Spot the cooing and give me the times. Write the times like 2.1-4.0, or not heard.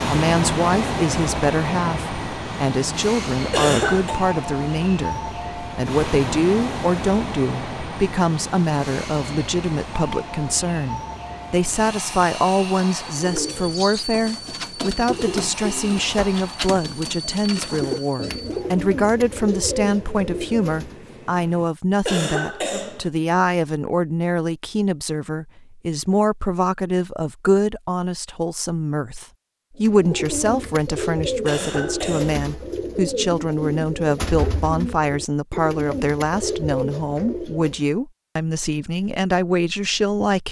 13.2-20.9, 29.8-37.9.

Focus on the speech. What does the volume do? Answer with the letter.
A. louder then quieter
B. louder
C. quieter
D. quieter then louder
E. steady
E.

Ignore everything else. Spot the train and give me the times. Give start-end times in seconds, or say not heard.
0.0-21.7.